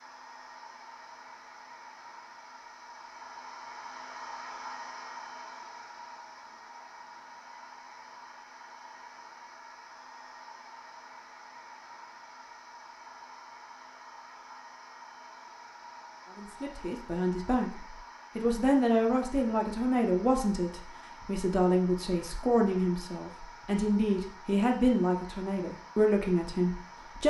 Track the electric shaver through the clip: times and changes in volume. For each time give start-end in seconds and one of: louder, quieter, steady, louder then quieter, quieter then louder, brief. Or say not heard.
not heard.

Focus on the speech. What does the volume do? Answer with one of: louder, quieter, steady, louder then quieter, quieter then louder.
steady.